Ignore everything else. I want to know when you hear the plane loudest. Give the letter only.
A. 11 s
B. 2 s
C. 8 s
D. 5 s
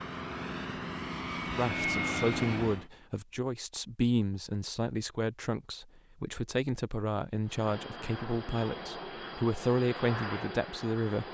B.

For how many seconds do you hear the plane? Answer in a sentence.
You can hear the plane for 7 seconds altogether.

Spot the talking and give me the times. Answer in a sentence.
The talking can be heard from 1.6 to 11.2 s.